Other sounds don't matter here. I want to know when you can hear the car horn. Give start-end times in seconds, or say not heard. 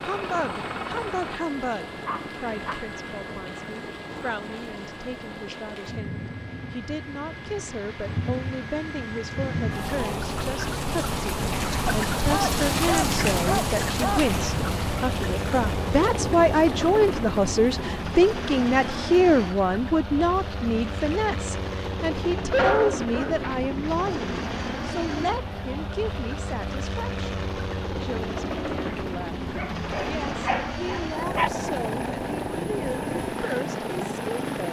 not heard.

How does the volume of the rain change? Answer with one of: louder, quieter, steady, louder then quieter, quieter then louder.
louder then quieter.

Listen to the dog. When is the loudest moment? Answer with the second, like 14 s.
23 s.